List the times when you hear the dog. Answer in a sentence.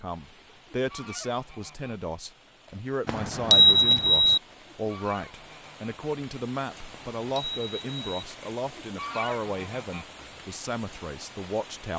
The dog can't be heard in this clip.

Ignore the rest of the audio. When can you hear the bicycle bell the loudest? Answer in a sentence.
The volume of the bicycle bell peaks at 4 seconds.